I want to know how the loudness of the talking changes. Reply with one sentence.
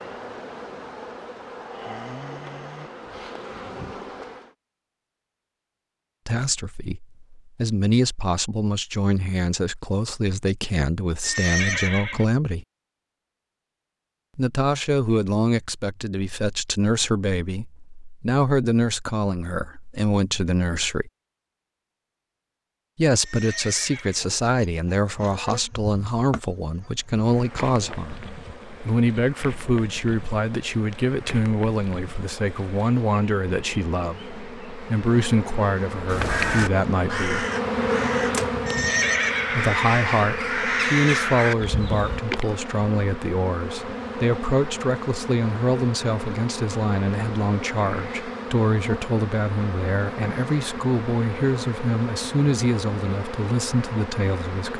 The volume of the talking stays about the same.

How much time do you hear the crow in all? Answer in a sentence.
You can hear the crow for 6 seconds altogether.